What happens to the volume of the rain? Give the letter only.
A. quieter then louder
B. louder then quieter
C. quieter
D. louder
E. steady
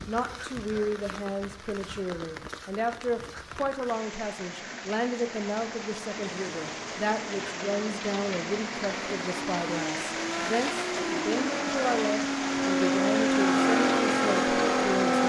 D.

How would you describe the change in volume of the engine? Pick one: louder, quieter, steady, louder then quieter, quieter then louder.
louder.